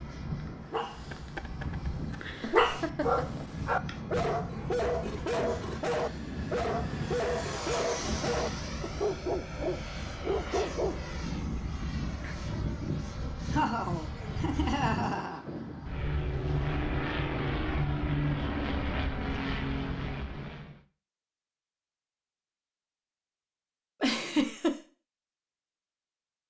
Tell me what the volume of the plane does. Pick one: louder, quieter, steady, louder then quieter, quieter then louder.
louder.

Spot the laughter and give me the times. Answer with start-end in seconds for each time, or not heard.
2.4-3.5, 13.5-15.4, 24.0-24.8.